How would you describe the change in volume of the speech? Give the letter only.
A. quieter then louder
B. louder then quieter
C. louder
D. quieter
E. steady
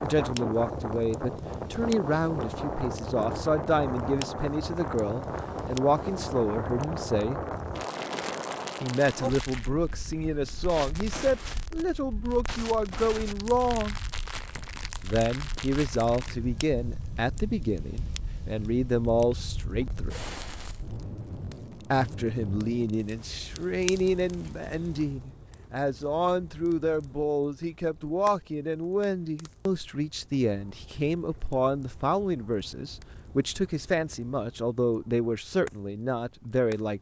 E.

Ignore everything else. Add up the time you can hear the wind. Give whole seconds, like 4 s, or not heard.
21 s.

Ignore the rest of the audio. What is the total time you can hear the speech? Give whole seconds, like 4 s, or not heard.
33 s.